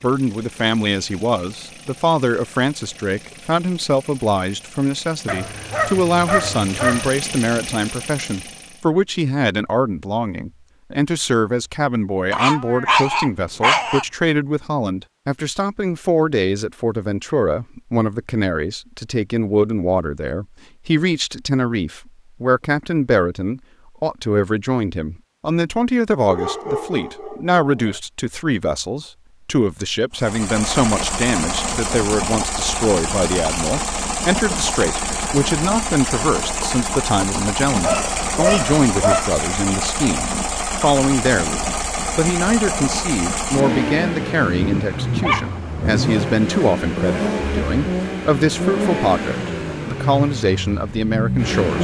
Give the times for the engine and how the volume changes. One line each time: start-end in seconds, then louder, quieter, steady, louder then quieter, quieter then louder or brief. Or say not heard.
0.0-8.9 louder
30.1-51.8 steady.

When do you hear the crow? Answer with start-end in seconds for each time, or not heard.
not heard.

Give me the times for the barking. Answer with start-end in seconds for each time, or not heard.
5.2-7.1, 12.3-14.1, 26.2-28.0, 37.8-39.3, 44.4-46.0.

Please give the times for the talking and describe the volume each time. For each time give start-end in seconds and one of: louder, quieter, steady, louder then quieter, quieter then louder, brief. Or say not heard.
0.0-51.8 steady.